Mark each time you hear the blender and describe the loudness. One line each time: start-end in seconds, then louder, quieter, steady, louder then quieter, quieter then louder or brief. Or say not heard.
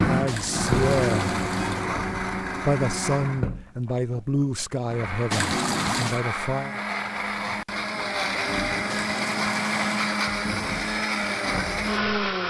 0.0-12.4 quieter then louder.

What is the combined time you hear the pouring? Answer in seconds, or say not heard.
4 s.